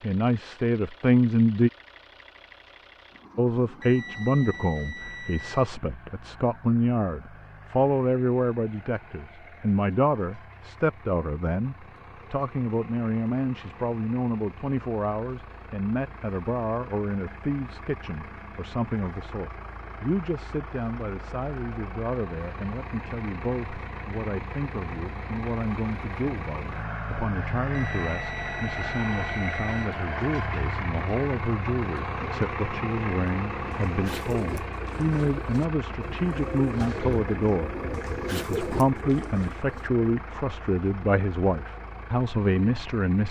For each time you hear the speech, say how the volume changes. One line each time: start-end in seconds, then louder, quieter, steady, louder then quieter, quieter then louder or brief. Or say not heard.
0.0-1.7 brief
3.4-43.2 quieter then louder.